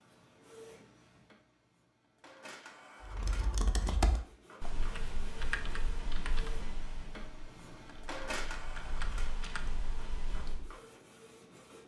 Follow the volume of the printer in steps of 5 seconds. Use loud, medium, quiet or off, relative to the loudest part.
medium, loud, medium.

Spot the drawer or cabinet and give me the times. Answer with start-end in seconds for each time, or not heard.
not heard.